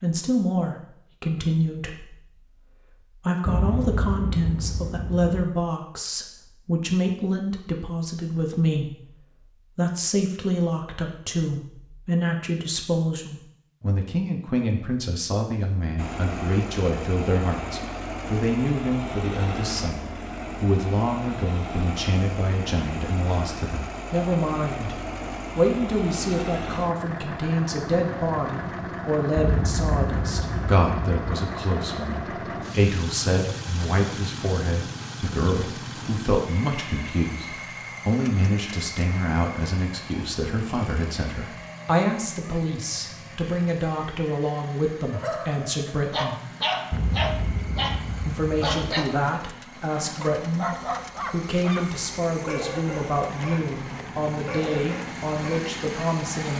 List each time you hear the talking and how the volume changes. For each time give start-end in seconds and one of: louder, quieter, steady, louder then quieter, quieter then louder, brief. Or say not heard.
0.0-46.4 steady
48.2-56.5 steady.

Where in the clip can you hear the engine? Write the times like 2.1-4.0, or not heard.
15.9-56.5.